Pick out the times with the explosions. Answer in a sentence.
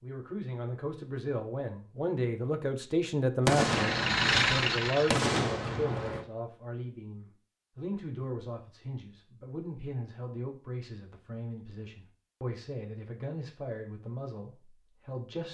You can hear the explosions from 3.5 to 6.2 s.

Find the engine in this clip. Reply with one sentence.
The engine can be heard from 3.6 to 5.3 s.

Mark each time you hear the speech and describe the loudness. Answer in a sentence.
The speech can be heard from 0.0 to 15.4 s, getting quieter.